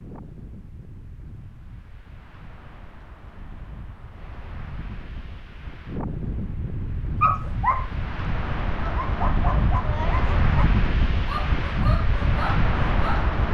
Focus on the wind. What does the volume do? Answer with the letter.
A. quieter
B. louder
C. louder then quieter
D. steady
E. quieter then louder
B.